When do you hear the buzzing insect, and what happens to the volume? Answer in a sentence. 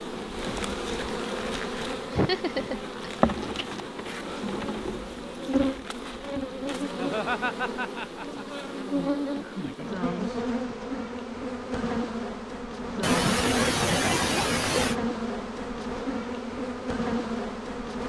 The buzzing insect can be heard from 0.0 to 18.0 s, at a steady volume.